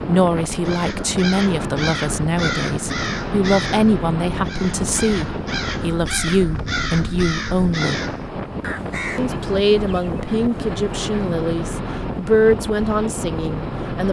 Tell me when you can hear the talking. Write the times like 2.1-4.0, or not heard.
0.1-8.0, 9.2-14.0.